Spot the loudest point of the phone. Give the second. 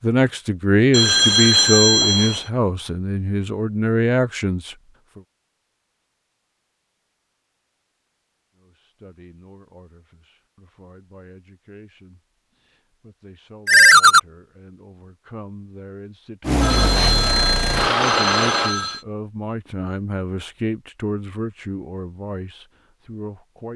14 s.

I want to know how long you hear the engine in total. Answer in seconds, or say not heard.
2 s.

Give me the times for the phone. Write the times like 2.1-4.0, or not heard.
0.9-2.5, 13.7-14.2, 16.6-19.0.